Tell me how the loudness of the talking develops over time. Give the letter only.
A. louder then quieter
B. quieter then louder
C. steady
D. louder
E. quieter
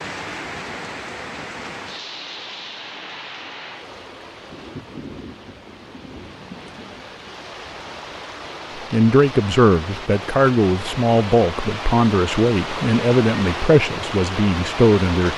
C.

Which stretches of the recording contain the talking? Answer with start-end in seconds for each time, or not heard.
8.9-15.3.